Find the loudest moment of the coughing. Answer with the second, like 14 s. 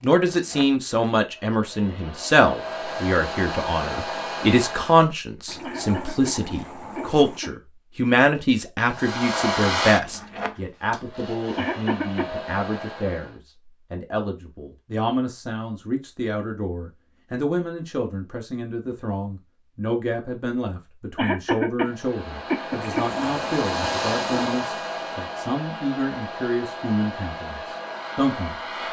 22 s.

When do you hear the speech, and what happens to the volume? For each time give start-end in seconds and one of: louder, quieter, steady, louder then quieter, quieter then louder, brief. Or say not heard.
0.0-28.6 quieter.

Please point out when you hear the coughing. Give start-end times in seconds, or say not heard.
5.6-7.5, 11.6-12.3, 21.1-23.1.